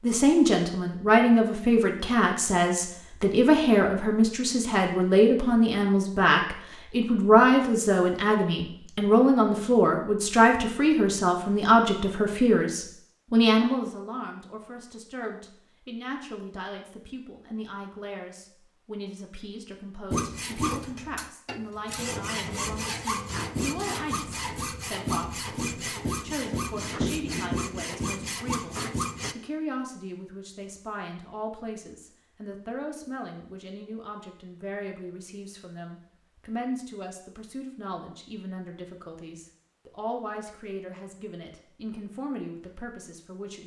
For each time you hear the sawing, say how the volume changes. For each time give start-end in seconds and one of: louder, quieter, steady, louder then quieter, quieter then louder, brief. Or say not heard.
20.1-29.4 steady.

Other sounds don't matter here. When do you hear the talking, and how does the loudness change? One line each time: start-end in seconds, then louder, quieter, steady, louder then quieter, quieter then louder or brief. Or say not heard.
0.0-43.6 quieter.